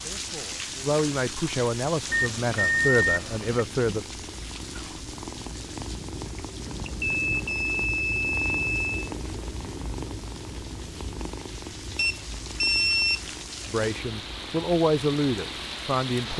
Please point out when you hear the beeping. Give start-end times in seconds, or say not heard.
2.1-3.6, 6.8-9.1, 11.9-13.3.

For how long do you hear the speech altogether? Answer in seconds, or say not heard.
7 s.